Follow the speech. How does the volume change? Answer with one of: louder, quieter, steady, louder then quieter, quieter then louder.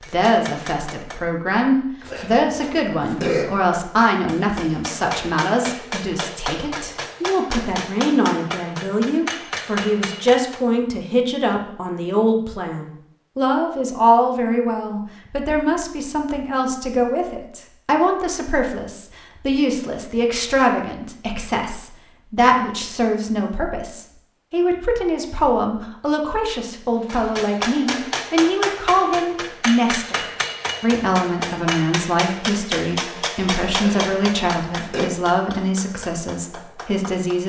steady.